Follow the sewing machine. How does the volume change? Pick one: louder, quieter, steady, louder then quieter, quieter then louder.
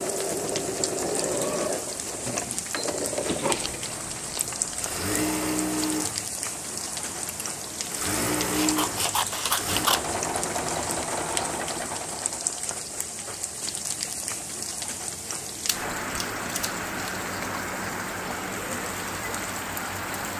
steady.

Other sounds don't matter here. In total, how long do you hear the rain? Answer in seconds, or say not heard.
20 s.